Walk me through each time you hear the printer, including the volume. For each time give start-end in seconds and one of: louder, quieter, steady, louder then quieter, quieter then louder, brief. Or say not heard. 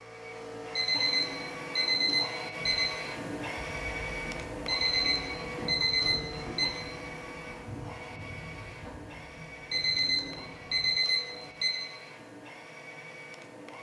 0.0-13.7 quieter.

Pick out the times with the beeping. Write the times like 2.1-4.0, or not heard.
0.8-2.9, 4.7-6.8, 9.7-11.8.